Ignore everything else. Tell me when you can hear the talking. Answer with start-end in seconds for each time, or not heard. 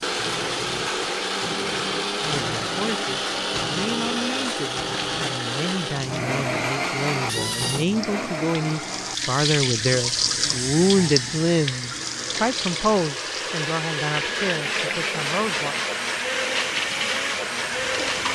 2.2-15.8.